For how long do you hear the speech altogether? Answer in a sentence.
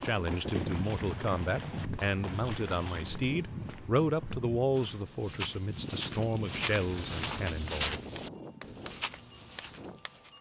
The speech can be heard for 8 seconds in total.